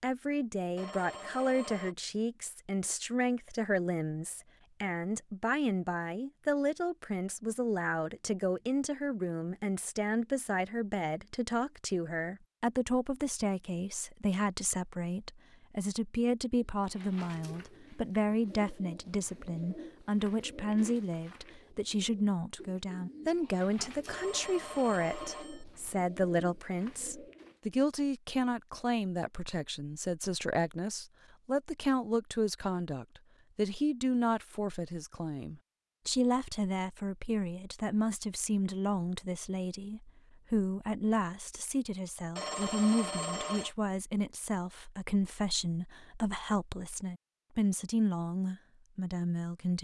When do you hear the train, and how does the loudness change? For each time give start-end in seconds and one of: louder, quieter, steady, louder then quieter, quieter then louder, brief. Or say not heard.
not heard.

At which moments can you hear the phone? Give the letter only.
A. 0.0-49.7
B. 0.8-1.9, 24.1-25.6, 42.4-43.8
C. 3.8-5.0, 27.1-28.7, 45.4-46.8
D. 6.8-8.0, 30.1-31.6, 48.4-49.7
B.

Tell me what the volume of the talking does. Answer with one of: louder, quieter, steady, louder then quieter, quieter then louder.
steady.